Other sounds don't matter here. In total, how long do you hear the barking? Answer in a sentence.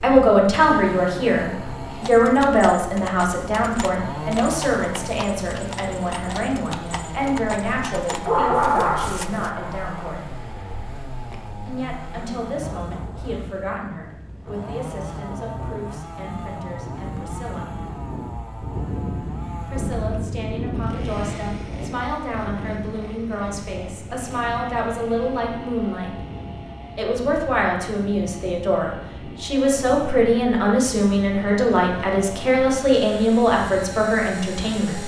You can hear the barking for 2 seconds altogether.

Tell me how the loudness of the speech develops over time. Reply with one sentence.
The volume of the speech goes down, then up.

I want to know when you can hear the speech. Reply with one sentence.
The speech can be heard from 0.0 to 10.3 s, from 11.7 to 17.6 s, from 19.6 to 26.1 s and from 26.9 to 35.0 s.